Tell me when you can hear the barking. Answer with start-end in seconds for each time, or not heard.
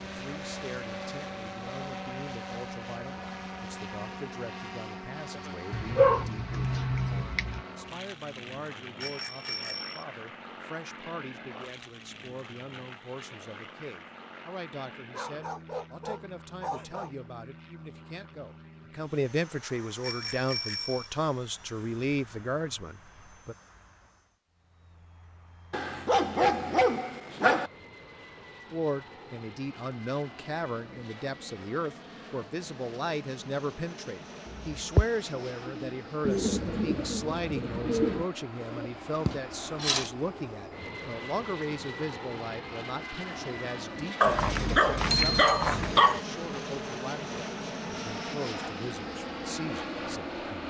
5.7-7.6, 15.1-17.1, 25.7-27.7, 44.2-46.2.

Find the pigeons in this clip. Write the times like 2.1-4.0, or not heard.
34.5-40.1.